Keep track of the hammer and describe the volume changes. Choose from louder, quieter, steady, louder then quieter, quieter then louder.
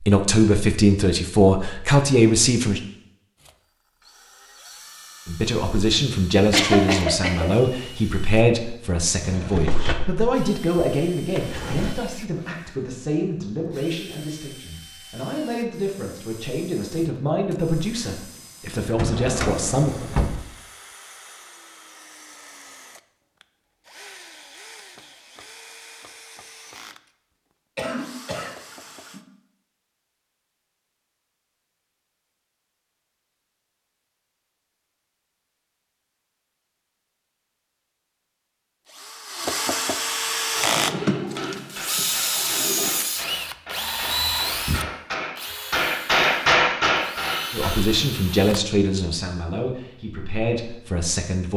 louder.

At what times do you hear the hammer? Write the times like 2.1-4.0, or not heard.
40.2-47.8.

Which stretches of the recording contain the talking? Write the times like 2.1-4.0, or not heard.
0.0-2.8, 5.2-19.9, 47.5-51.5.